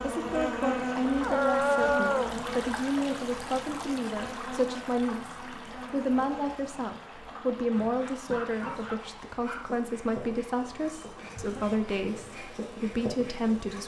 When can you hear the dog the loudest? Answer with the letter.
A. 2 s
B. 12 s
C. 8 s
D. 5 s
A.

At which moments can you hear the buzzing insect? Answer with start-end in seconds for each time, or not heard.
0.0-13.8.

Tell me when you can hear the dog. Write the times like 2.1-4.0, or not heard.
1.2-2.4, 7.3-9.7.